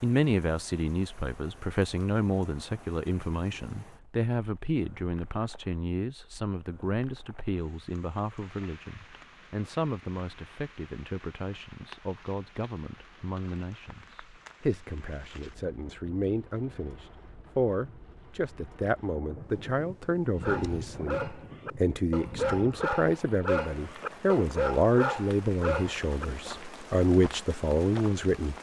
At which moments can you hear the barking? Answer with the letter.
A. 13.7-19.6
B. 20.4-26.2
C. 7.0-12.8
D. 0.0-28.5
B.